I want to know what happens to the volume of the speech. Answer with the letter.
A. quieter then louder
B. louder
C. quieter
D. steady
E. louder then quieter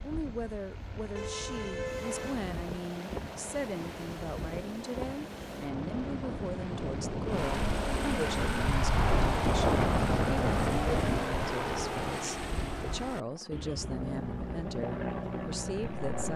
D.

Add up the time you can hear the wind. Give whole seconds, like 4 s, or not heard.
13 s.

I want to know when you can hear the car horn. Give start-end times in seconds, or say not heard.
1.1-2.4, 8.9-9.9.